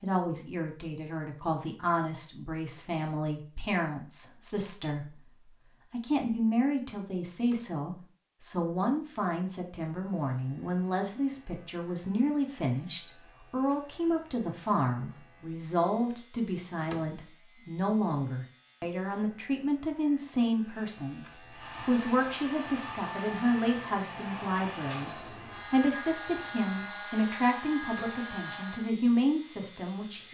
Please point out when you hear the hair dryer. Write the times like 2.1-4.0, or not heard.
21.5-28.9.